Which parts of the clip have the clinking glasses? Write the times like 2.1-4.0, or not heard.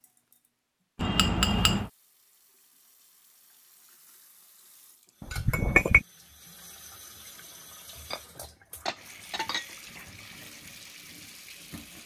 0.9-1.9, 5.2-6.0, 8.1-9.8.